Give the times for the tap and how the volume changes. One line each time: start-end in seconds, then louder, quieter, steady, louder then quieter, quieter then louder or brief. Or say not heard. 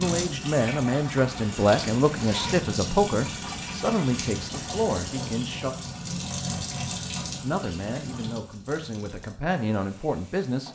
0.0-10.7 quieter.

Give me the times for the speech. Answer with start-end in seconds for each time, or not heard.
0.0-5.8, 7.4-10.7.